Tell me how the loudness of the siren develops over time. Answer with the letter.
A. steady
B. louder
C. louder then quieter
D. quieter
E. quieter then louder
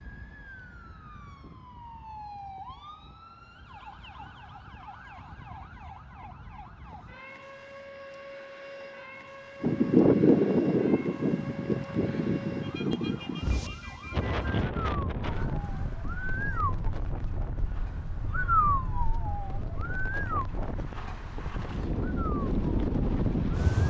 B.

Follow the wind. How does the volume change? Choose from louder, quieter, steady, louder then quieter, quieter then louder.
quieter then louder.